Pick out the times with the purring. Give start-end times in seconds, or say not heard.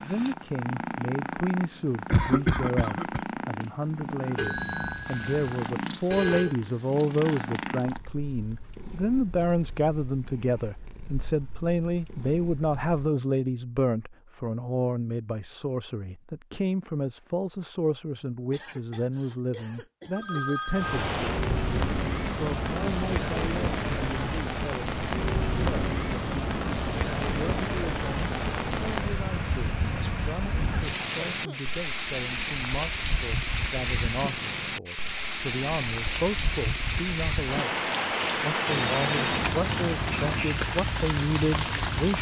0.0-13.1.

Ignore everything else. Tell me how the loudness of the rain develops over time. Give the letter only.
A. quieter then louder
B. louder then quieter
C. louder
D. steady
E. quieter
D.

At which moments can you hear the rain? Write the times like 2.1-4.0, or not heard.
20.7-42.1.